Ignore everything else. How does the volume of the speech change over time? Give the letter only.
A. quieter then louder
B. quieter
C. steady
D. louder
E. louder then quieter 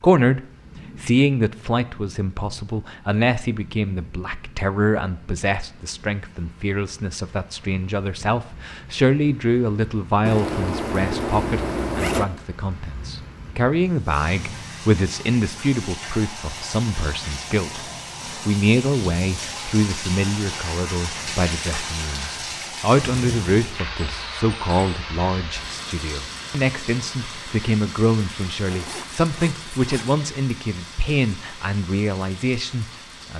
C.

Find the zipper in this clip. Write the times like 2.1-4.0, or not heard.
10.2-12.2, 28.6-30.1.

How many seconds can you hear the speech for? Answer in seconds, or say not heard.
33 s.